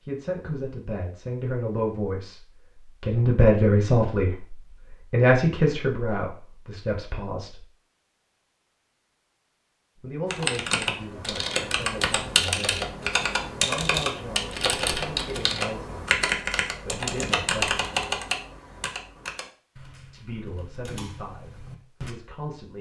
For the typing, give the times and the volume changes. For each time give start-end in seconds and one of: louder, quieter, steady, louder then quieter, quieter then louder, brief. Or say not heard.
10.3-22.1 quieter.